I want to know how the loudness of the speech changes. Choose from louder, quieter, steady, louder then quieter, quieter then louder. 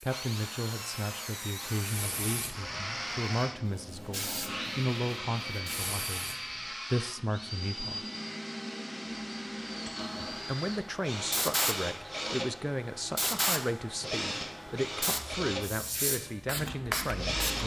steady.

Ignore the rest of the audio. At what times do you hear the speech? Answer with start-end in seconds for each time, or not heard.
0.0-8.1, 10.3-17.6.